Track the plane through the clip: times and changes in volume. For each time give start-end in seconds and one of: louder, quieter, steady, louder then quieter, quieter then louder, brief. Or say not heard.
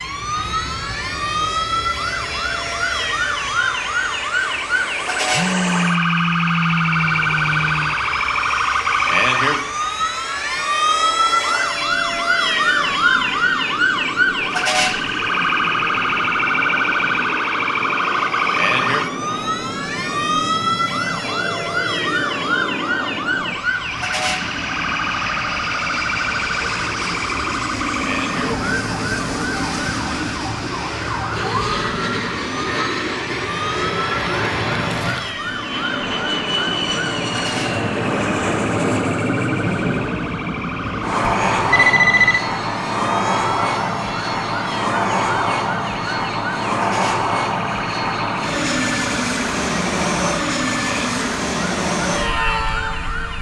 0.0-53.3 louder.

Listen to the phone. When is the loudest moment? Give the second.
42 s.